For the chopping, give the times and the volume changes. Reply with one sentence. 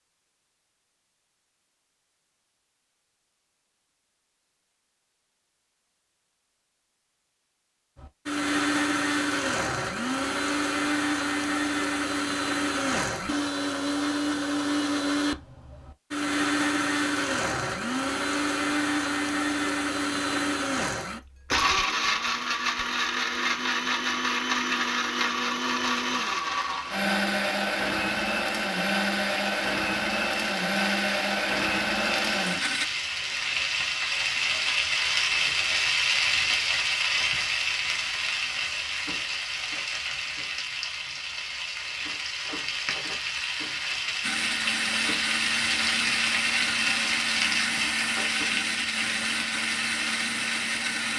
You can't hear the chopping here.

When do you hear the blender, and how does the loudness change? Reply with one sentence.
The blender can be heard from 8.0 to 32.9 s, at a steady volume; and from 44.2 to 51.1 s, at a steady volume.